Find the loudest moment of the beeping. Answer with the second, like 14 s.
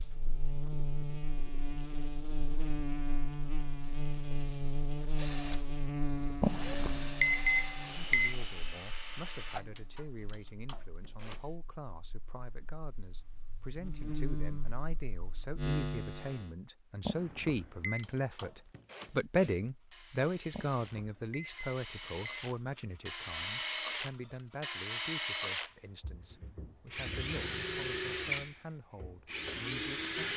7 s.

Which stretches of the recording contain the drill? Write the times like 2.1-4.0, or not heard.
5.2-11.6, 17.9-30.3.